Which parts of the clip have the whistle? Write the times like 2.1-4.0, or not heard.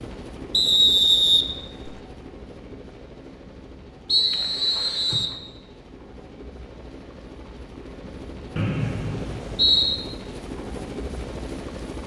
0.5-1.9, 4.0-5.4, 8.6-10.1.